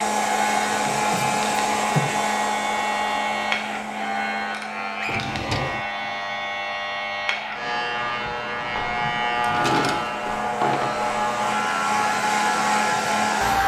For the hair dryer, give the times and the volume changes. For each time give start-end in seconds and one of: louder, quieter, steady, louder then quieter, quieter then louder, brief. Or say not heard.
0.0-13.6 quieter then louder.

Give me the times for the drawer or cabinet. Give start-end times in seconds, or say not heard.
0.8-2.1, 5.0-5.8, 9.3-10.9.